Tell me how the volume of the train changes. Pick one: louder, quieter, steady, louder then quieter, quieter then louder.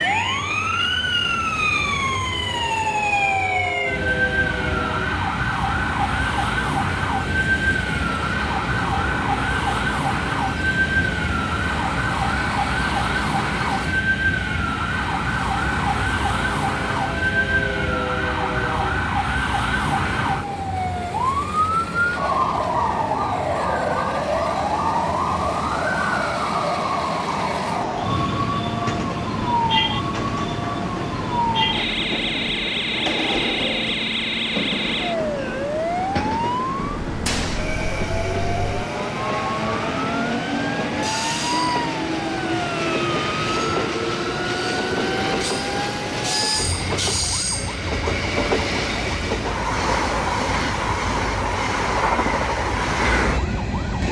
louder.